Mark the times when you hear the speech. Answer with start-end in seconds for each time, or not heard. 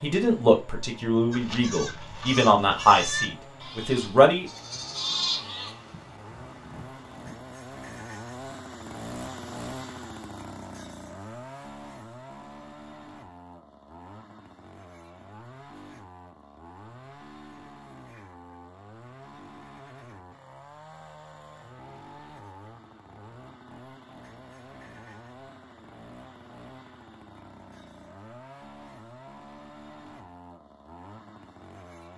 0.0-4.5.